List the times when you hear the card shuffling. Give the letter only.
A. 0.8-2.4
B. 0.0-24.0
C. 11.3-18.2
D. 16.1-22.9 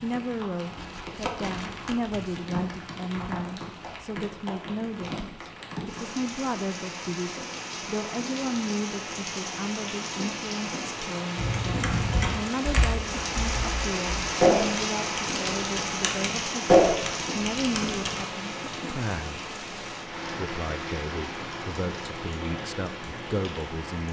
A.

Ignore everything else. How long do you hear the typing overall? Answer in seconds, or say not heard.
7 s.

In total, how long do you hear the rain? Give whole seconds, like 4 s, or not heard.
24 s.